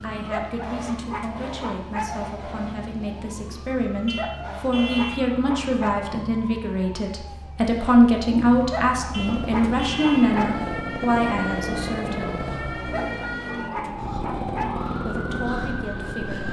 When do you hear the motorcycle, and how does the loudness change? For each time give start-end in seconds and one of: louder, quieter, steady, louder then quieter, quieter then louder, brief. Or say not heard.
9.1-16.4 steady.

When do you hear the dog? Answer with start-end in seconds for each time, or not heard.
0.3-2.2, 4.2-6.1, 8.7-10.7, 12.9-14.8.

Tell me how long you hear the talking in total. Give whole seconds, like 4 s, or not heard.
14 s.